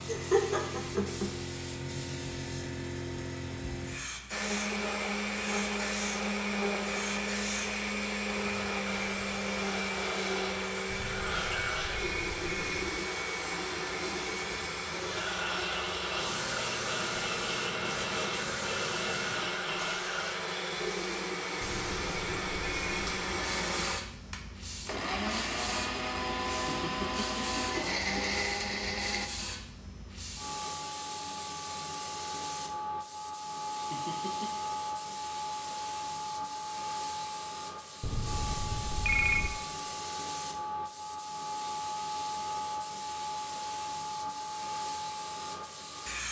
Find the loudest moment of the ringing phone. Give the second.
39 s.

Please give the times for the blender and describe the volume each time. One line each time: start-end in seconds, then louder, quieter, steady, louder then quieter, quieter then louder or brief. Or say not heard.
4.3-29.3 steady.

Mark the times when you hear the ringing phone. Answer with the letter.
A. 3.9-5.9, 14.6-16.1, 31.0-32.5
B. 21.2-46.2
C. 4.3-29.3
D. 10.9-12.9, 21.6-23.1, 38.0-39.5
D.